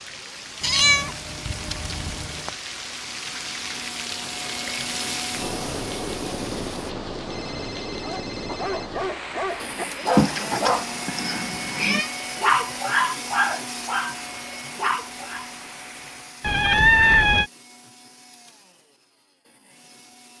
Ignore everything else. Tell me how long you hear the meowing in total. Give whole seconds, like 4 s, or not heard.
5 s.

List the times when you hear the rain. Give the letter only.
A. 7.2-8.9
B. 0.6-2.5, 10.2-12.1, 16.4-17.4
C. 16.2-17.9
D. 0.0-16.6
D.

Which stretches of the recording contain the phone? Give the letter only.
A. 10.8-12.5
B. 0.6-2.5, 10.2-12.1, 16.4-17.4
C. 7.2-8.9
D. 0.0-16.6
C.